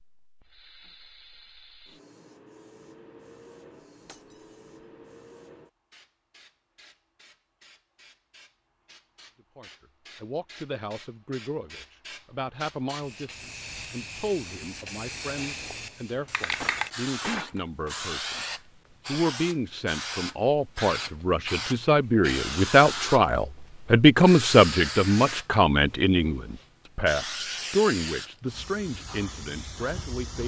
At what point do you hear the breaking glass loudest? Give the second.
17 s.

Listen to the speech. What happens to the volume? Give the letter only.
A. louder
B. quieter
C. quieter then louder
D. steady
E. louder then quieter
E.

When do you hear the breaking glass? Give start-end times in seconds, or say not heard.
4.0-4.6, 16.6-17.9.